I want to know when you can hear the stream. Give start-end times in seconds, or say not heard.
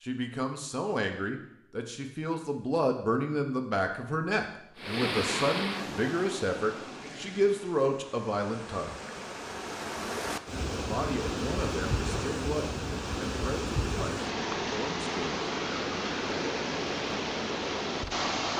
4.8-18.5.